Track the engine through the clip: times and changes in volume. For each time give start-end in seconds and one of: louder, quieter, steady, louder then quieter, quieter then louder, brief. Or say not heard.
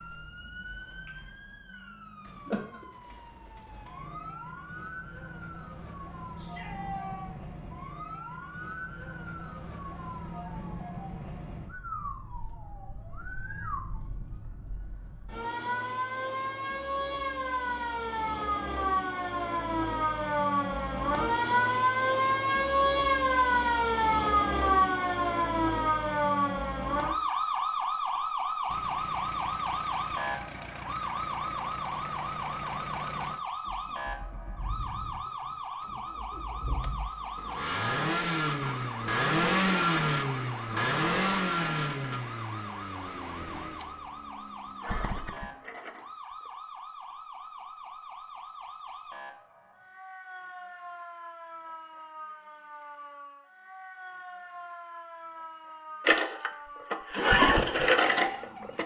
28.6-46.5 louder then quieter
56.0-58.8 brief.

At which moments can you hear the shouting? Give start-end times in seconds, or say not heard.
6.3-7.3.